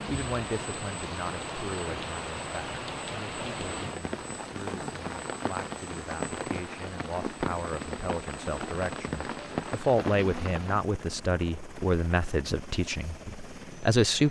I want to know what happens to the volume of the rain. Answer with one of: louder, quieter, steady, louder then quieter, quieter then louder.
steady.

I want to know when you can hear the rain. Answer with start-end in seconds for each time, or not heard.
0.0-10.8.